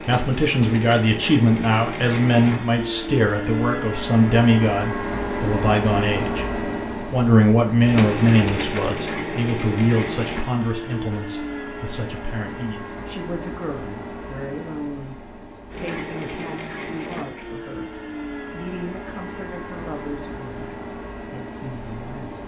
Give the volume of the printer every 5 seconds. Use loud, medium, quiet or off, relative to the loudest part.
loud, loud, medium, medium, medium.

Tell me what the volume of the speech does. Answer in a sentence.
The loudness of the speech goes down.